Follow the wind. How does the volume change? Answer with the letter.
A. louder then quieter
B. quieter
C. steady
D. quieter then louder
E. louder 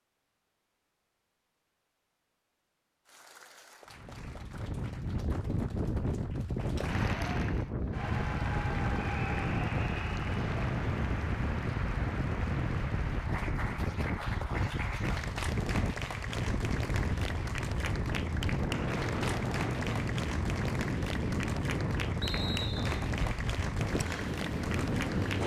C.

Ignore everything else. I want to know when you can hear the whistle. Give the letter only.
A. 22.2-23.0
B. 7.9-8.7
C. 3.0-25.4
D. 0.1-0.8
A.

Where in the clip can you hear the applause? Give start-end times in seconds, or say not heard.
3.0-25.4.